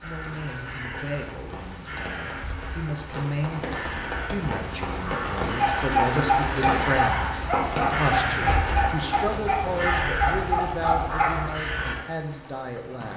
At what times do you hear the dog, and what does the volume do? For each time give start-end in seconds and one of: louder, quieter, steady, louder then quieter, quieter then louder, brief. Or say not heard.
5.5-11.9 steady.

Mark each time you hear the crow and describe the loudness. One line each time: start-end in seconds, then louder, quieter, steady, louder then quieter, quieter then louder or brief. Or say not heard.
0.0-11.9 louder.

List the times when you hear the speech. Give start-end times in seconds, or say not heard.
0.0-13.1.